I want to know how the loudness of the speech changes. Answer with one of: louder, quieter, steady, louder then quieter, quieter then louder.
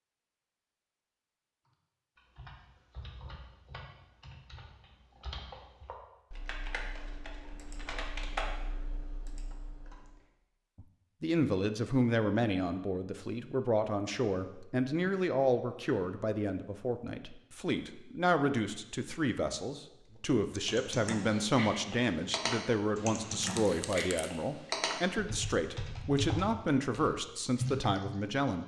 steady.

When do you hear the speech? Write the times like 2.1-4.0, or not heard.
10.8-28.6.